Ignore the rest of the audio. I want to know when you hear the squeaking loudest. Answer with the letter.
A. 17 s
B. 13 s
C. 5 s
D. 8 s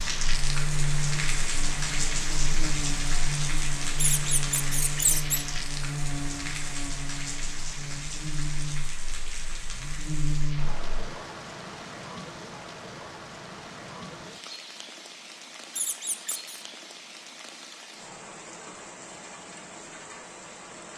C.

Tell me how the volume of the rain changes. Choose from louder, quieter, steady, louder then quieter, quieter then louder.
quieter.